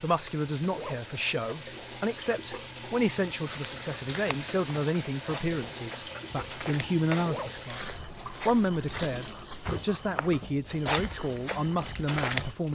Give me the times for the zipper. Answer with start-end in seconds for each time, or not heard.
0.7-1.4, 7.2-7.7.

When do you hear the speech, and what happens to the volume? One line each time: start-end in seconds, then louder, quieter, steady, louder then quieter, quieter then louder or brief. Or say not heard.
0.0-12.7 steady.